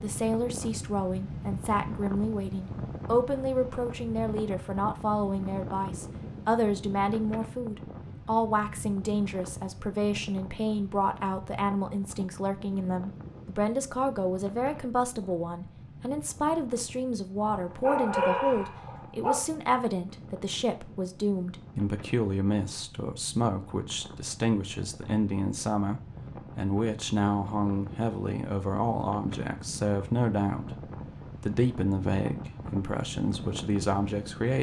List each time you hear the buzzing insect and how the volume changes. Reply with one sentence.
The buzzing insect can't be heard in this clip.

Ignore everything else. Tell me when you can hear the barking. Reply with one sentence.
The barking can be heard from 17.4 to 19.4 s.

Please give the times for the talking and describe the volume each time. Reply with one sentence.
The talking can be heard from 0.0 to 34.5 s, at a steady volume.